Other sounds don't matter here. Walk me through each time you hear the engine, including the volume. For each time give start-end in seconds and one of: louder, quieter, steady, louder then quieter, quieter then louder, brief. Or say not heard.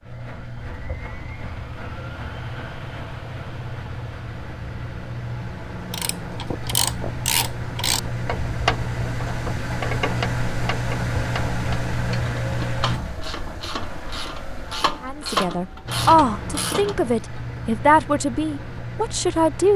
0.0-19.7 louder then quieter.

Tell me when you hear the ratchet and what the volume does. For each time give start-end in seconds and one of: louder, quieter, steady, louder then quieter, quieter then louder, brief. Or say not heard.
5.9-17.0 quieter then louder.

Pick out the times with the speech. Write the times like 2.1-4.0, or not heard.
15.0-19.7.